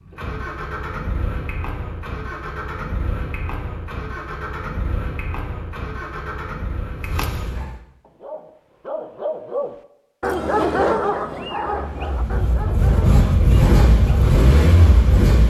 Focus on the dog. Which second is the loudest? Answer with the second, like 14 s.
11 s.